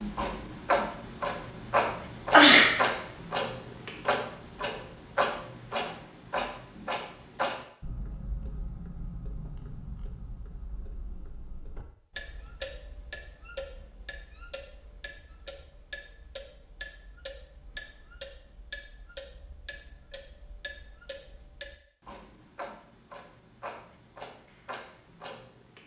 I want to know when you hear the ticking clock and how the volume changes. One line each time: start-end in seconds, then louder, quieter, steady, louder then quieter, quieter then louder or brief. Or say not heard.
0.0-25.8 quieter.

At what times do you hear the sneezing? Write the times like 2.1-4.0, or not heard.
2.3-2.7.